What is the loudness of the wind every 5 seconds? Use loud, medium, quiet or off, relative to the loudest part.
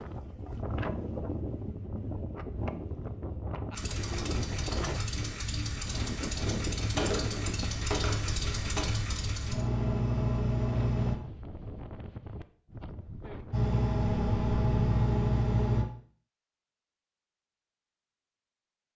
loud, loud, medium, off.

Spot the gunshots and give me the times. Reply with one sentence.
You can hear the gunshots from 7.0 to 8.8 s.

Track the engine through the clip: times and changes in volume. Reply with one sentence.
The engine can be heard from 3.7 to 11.2 s, getting louder; and briefly from 13.5 to 15.8 s.